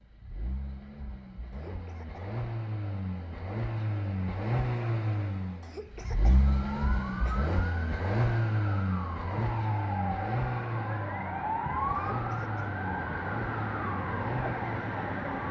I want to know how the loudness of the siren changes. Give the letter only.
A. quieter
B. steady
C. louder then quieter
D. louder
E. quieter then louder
D.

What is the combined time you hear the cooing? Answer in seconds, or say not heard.
not heard.